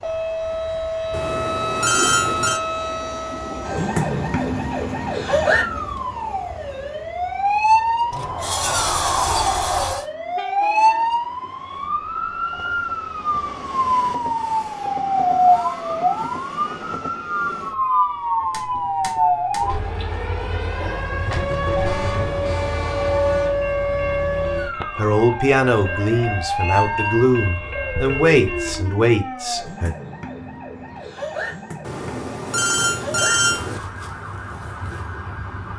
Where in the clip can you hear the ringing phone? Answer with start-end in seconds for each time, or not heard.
1.1-2.6, 31.9-33.8.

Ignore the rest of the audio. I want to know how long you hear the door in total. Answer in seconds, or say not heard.
2 s.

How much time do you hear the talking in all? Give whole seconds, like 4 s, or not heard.
5 s.